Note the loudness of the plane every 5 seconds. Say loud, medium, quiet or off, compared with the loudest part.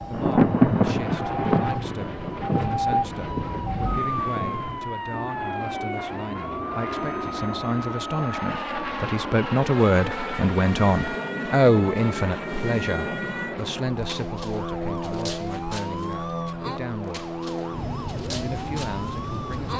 medium, loud, loud, loud.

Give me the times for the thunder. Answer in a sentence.
You can hear the thunder from 0.1 to 4.8 s.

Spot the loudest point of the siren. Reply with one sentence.
The loudest moment of the siren is at 3 seconds.